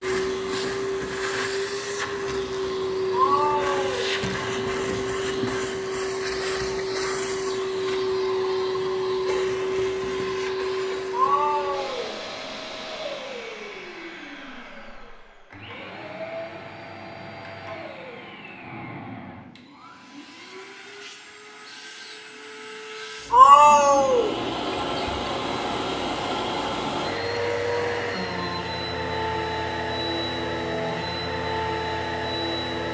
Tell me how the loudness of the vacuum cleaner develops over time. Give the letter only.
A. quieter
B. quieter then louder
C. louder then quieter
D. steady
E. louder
B.